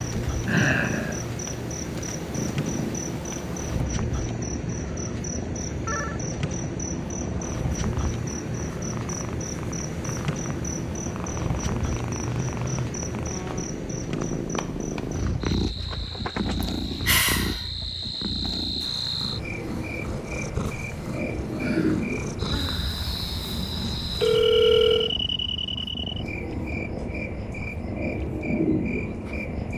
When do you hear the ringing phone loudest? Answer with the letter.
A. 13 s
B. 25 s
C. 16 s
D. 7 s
B.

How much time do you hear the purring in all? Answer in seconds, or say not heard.
30 s.